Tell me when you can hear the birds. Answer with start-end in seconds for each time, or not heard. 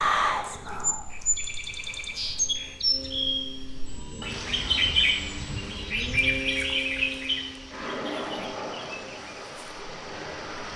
0.0-10.7.